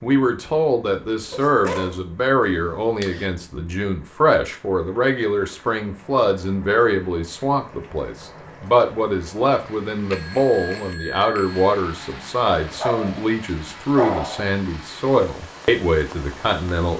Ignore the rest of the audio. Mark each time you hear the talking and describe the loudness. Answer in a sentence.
The talking can be heard from 0.0 to 16.9 s, at a steady volume.